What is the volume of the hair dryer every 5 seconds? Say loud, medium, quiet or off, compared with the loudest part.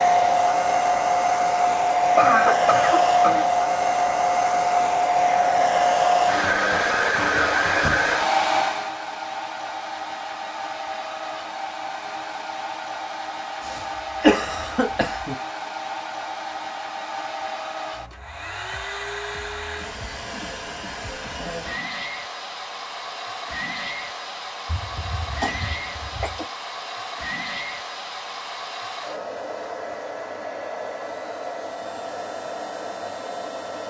loud, loud, quiet, quiet, quiet, quiet, quiet.